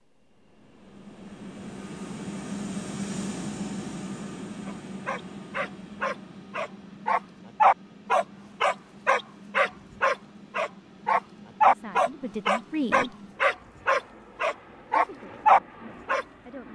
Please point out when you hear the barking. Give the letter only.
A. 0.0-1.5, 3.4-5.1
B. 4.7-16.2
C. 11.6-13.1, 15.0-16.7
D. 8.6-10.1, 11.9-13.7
B.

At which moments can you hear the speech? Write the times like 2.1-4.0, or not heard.
11.6-13.1, 15.0-16.7.